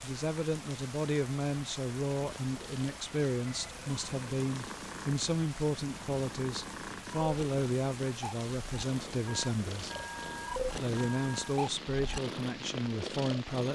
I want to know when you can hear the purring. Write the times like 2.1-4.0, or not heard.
2.1-13.7.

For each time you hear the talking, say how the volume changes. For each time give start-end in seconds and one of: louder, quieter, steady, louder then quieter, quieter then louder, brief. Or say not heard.
0.0-9.9 steady
10.8-13.7 brief.